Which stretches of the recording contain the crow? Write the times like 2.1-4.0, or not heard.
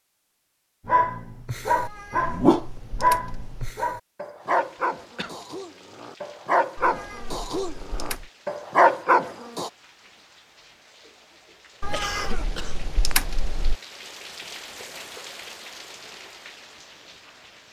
not heard.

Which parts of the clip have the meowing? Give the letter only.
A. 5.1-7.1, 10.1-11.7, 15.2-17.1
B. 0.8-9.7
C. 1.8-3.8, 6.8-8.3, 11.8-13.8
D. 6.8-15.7
C.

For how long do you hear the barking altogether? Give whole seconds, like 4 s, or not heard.
9 s.